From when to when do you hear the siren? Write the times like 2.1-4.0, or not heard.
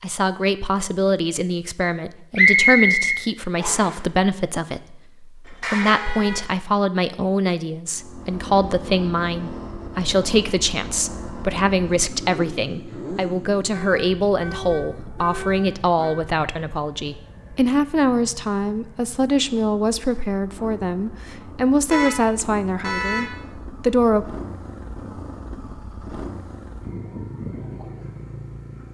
not heard.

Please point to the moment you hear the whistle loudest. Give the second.
3 s.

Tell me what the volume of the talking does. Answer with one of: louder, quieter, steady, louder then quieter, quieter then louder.
steady.